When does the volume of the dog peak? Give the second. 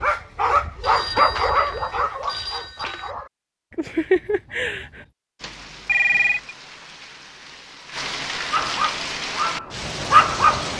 10 s.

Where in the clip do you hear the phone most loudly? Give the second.
6 s.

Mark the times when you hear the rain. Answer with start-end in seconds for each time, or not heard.
5.3-10.7.